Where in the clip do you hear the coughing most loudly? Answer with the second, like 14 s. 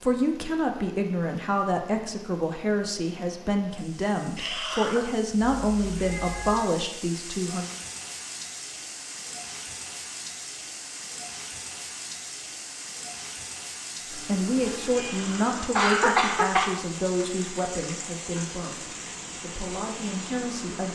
16 s.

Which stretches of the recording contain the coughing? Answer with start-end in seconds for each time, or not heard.
4.3-5.0, 15.1-16.7.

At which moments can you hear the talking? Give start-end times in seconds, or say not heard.
0.0-7.7, 14.1-20.9.